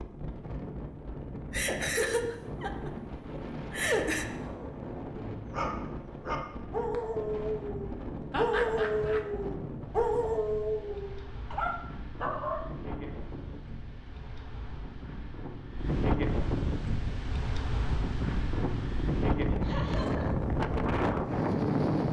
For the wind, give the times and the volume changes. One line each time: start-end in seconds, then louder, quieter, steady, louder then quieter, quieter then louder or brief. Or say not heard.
0.0-22.0 louder.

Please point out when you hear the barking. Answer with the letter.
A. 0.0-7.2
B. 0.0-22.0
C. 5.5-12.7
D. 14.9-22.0
C.